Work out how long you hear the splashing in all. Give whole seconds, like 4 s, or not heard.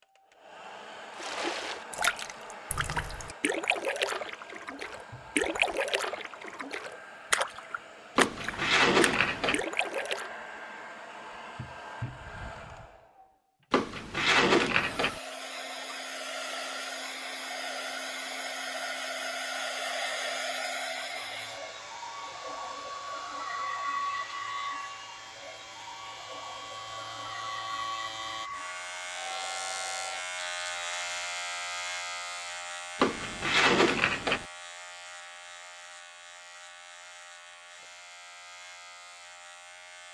9 s.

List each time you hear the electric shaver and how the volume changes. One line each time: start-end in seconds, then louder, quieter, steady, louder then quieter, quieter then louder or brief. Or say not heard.
20.9-40.0 louder then quieter.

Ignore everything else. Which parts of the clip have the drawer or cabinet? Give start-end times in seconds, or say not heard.
8.2-9.6, 13.7-15.2, 33.0-34.5.